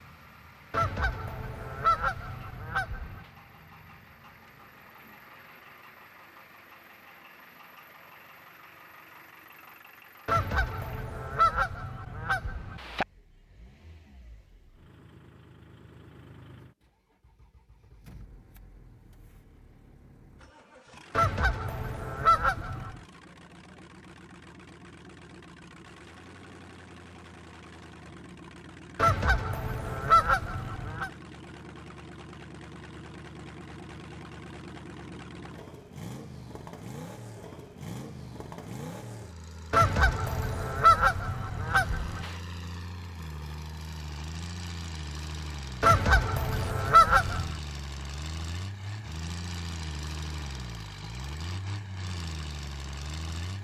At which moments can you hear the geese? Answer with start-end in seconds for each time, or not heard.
0.7-3.2, 10.2-13.1, 21.1-23.0, 28.9-31.1, 39.7-42.4, 45.8-47.5.